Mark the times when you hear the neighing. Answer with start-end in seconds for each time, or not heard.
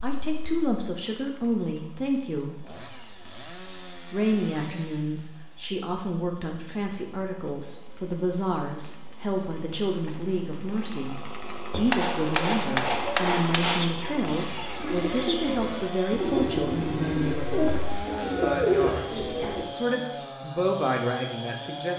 16.2-17.2.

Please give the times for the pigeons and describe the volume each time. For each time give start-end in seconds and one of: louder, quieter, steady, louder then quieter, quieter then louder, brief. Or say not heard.
11.7-19.6 louder.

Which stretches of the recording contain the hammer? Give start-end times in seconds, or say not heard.
11.8-13.9.